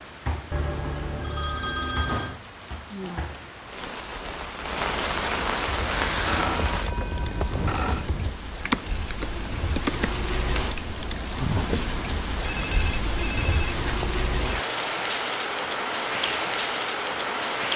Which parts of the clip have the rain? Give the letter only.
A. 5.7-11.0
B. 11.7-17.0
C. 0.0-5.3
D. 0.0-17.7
D.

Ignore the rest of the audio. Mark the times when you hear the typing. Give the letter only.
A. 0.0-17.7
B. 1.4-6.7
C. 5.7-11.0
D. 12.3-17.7
C.